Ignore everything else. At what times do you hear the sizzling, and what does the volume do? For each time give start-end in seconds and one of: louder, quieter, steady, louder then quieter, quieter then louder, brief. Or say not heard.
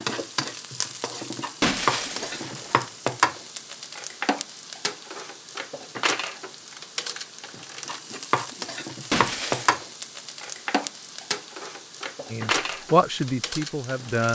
0.0-14.2 steady.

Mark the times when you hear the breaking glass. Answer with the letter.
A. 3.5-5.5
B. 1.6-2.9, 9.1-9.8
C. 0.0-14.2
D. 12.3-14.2
B.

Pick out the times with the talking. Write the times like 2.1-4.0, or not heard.
12.3-14.2.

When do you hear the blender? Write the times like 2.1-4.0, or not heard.
not heard.